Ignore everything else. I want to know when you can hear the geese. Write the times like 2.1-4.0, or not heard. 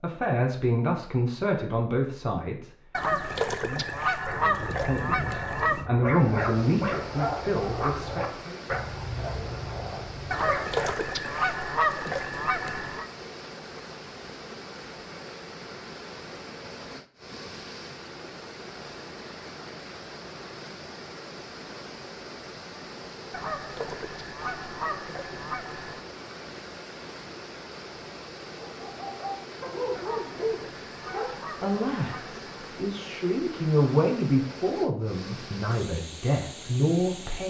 2.9-5.8, 10.3-13.1, 23.3-26.0, 29.9-32.5.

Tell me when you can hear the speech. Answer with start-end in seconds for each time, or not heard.
0.0-8.6, 31.6-37.4.